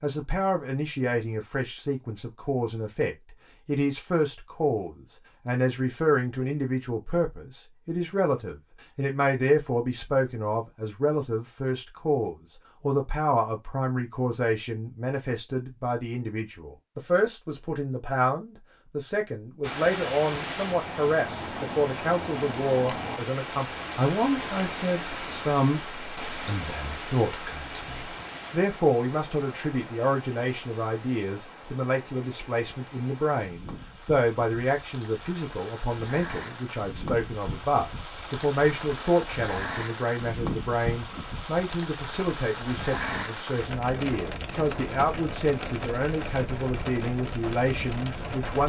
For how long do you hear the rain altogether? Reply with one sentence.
You can hear the rain for 29 seconds altogether.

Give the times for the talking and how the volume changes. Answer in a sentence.
You can hear the talking from 0.0 to 48.6 s, at a steady volume.